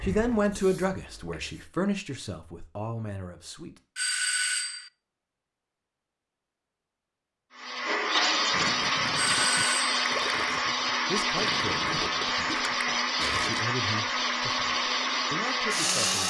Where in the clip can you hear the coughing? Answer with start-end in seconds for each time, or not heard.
not heard.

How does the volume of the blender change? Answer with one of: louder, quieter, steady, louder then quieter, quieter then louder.
steady.